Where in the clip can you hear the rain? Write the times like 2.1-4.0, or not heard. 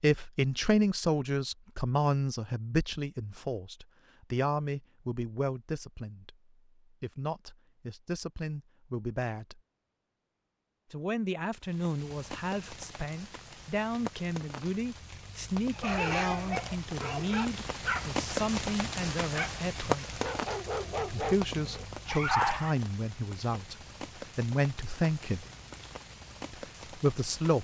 11.6-27.5.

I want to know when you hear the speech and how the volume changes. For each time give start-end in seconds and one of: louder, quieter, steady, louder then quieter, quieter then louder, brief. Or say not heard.
0.0-9.6 quieter
10.9-20.1 steady
21.1-23.8 brief
24.4-25.4 brief
26.5-27.5 brief.